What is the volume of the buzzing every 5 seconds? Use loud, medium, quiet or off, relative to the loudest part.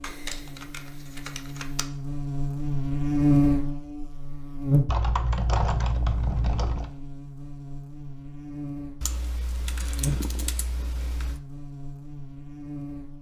loud, quiet, medium.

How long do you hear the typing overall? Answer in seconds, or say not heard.
6 s.